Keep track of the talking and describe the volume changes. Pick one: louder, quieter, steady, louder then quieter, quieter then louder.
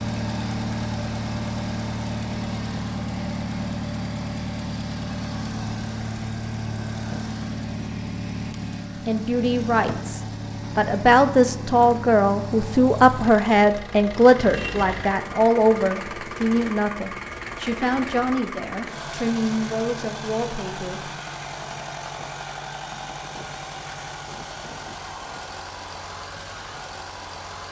quieter.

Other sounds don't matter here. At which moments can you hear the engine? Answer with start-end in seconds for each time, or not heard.
0.0-27.6.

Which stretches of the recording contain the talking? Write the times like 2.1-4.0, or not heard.
9.1-21.1.